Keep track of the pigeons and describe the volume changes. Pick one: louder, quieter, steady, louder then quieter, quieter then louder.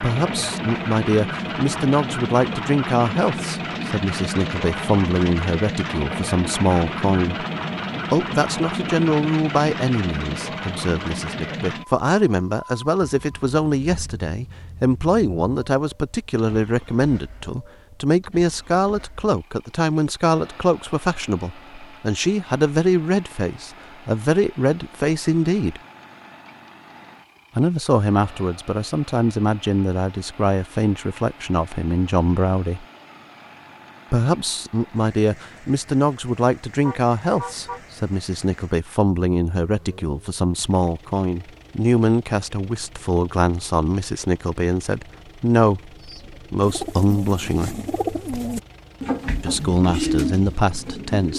louder.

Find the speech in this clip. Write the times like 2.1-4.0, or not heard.
0.0-7.5, 8.1-25.8, 27.6-32.9, 34.1-47.8, 49.4-51.3.